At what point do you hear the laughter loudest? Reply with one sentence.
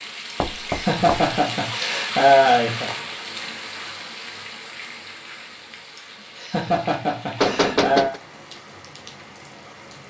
The loudest moment of the laughter is at 2 seconds.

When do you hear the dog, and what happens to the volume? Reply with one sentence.
You can't hear the dog here.